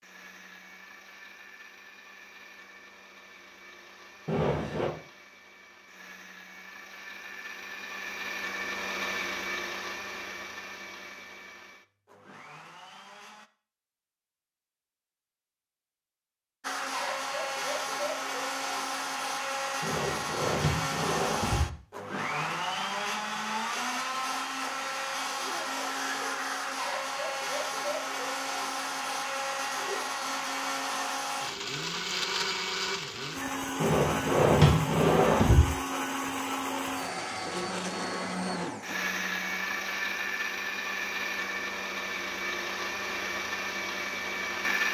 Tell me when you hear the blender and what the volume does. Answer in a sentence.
You can hear the blender from 0.0 to 13.5 s, getting louder then quieter; and from 16.6 to 44.8 s, at a steady volume.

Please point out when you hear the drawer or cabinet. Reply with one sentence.
You can hear the drawer or cabinet from 4.2 to 4.9 s, from 19.8 to 21.7 s and from 33.8 to 35.7 s.